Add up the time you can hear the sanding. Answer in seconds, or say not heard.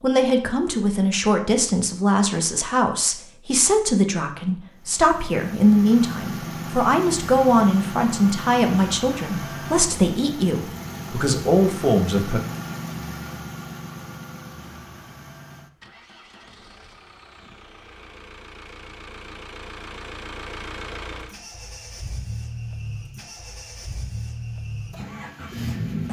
not heard.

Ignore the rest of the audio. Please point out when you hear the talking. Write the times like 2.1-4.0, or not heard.
0.0-12.4.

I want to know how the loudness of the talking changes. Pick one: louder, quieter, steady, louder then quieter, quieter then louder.
steady.